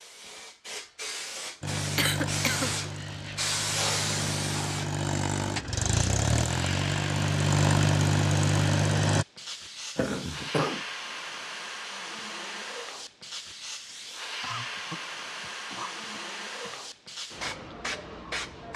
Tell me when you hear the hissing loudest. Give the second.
4 s.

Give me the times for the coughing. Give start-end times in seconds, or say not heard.
1.9-2.7, 9.9-10.8, 14.4-16.9.